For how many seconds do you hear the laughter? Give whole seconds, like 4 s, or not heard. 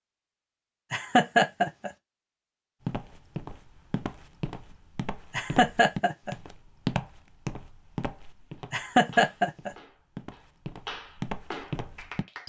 3 s.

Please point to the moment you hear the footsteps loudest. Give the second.
7 s.